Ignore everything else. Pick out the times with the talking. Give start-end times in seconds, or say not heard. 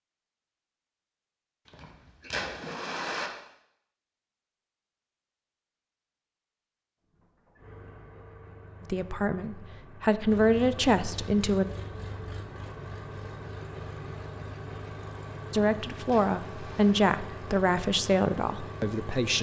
8.9-11.7, 15.5-19.3.